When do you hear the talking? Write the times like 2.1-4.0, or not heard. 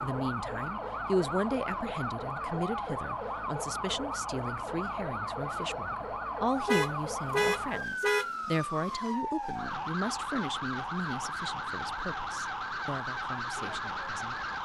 0.0-14.4.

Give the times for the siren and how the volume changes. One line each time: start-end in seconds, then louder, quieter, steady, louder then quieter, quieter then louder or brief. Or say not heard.
0.0-14.6 steady.